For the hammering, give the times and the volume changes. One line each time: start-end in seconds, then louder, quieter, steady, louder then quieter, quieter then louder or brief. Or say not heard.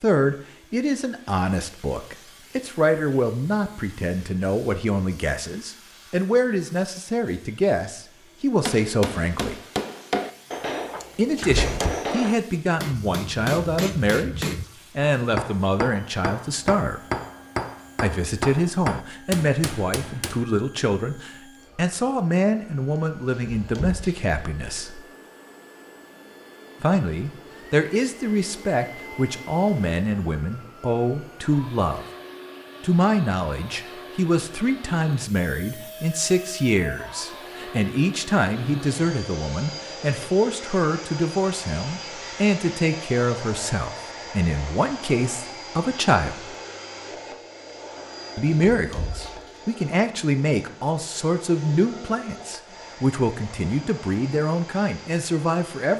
8.7-20.4 steady.